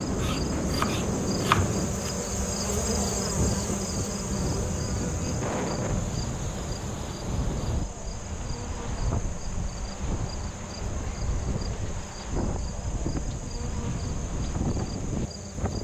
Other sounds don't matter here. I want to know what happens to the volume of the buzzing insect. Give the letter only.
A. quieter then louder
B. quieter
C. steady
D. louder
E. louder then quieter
B.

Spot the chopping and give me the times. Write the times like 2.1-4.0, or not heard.
0.1-2.1.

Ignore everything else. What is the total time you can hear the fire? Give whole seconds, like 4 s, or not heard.
not heard.